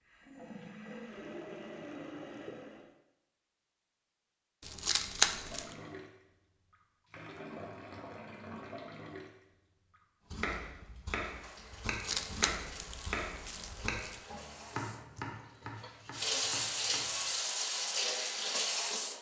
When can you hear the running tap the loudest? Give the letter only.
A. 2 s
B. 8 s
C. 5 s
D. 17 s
D.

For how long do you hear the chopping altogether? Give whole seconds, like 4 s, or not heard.
7 s.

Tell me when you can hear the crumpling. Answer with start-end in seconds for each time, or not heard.
4.6-5.7, 11.8-14.2.